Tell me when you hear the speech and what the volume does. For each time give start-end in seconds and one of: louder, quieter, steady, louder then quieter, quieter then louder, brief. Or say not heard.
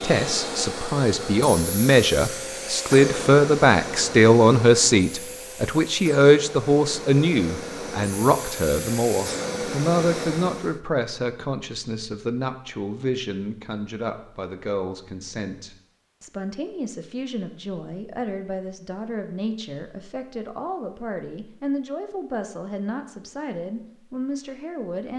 0.0-25.1 quieter.